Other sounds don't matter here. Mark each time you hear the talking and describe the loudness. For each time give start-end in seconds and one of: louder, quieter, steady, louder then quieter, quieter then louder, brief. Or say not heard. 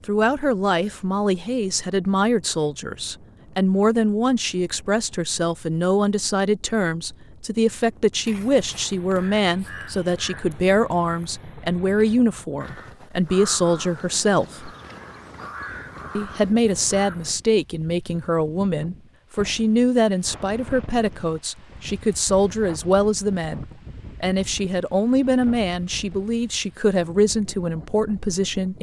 0.1-14.7 steady
16.1-28.7 steady.